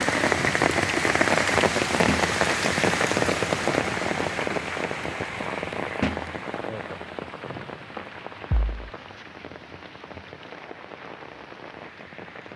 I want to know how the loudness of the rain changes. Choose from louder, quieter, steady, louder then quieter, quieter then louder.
quieter.